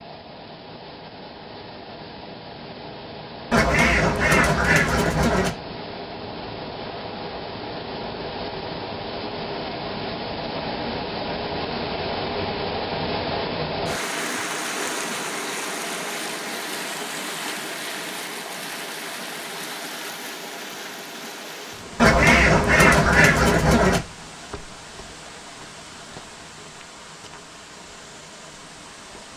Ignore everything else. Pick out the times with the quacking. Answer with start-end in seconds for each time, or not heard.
3.5-5.5, 21.9-24.0.